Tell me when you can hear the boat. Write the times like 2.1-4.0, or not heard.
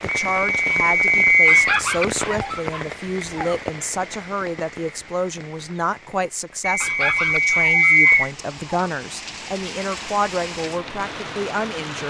not heard.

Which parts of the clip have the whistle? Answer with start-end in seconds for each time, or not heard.
0.1-1.6, 6.6-8.3.